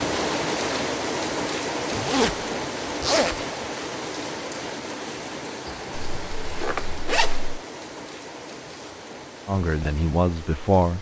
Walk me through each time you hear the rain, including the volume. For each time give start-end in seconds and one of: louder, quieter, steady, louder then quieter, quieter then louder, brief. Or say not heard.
0.0-10.9 quieter.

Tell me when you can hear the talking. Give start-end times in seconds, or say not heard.
9.4-10.9.